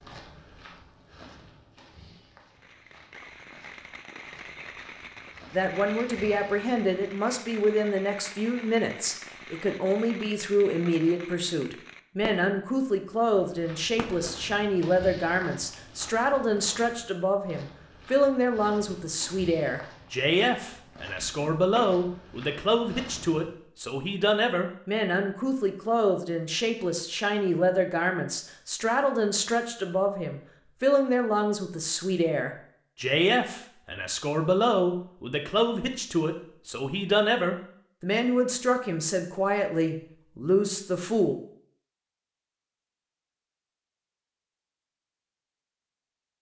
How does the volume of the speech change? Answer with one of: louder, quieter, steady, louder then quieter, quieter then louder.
steady.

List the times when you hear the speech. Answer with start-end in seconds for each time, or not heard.
5.5-41.4.